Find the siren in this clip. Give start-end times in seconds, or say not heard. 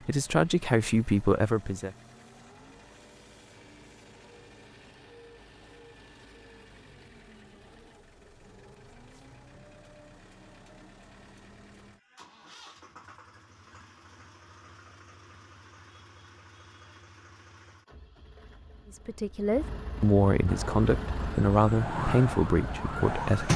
20.4-23.5.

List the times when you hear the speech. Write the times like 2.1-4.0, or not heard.
0.1-1.9, 18.9-23.5.